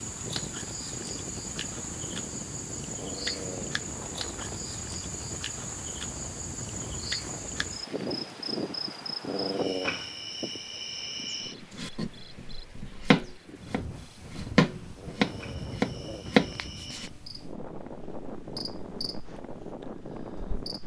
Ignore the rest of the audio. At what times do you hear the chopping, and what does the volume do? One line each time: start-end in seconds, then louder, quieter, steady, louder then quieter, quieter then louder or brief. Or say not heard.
11.7-17.1 louder.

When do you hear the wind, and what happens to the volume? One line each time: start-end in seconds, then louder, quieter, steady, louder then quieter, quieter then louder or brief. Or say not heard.
0.0-20.8 steady.